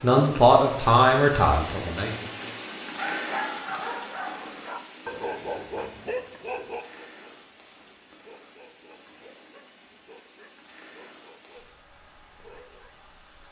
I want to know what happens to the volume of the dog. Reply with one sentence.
The volume of the dog goes down.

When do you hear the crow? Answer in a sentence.
You can't hear the crow here.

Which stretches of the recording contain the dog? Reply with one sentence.
You can hear the dog from 2.6 to 12.9 s.